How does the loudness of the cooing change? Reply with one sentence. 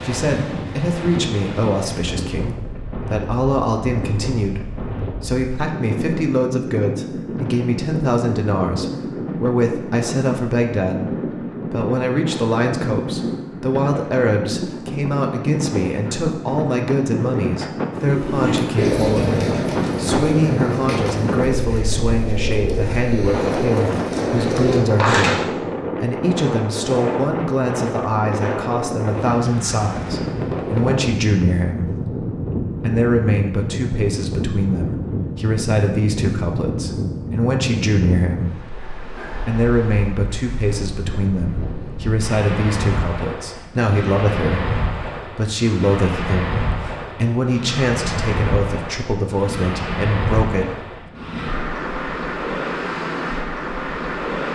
The volume of the cooing goes down, then up.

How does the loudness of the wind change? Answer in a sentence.
The loudness of the wind stays about the same.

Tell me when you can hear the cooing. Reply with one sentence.
You can hear the cooing from 17.9 to 25.4 s.